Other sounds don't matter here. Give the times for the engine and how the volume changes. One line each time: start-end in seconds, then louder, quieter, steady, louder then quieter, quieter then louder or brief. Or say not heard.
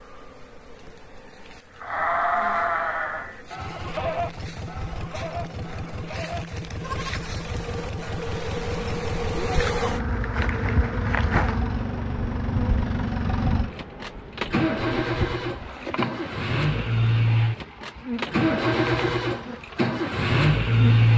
3.5-21.1 louder.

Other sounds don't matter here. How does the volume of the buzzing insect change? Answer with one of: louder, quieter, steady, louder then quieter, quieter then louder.
louder then quieter.